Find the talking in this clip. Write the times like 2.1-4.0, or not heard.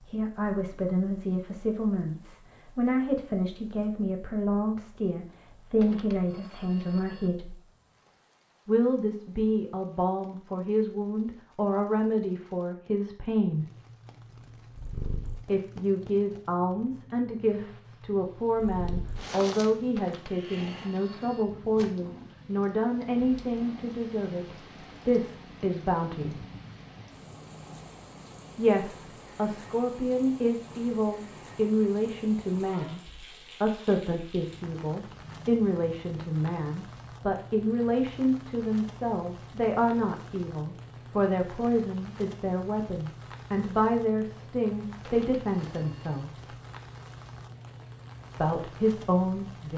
0.0-7.5, 8.7-13.7, 15.4-26.4, 28.6-46.5, 48.4-49.7.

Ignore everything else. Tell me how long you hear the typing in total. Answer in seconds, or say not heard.
not heard.